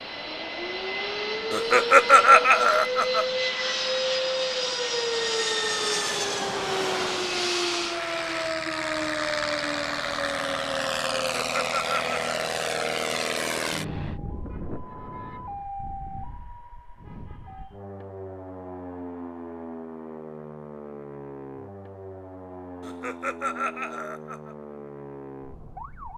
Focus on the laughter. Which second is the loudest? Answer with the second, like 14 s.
2 s.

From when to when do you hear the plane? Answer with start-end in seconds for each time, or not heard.
0.0-14.2.